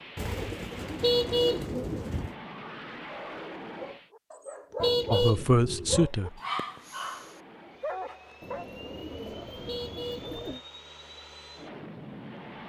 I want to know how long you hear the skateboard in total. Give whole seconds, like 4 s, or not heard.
not heard.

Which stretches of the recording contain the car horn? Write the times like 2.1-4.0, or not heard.
1.0-2.3, 4.8-6.1, 9.7-10.3.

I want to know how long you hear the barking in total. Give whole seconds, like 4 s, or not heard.
5 s.